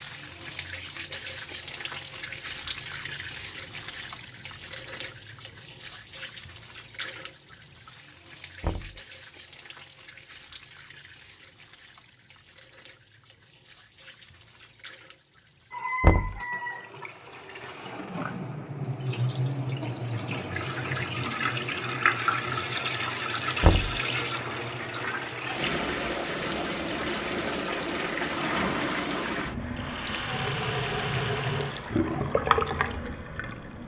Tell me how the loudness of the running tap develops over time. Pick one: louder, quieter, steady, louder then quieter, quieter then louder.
quieter then louder.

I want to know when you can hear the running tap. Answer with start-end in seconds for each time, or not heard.
0.0-33.8.